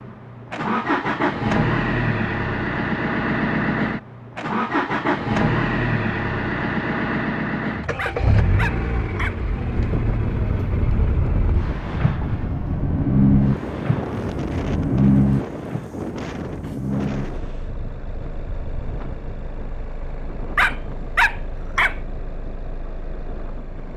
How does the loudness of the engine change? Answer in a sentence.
The loudness of the engine goes down.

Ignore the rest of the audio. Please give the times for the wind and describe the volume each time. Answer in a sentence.
The wind can be heard from 9.7 to 23.9 s, getting quieter.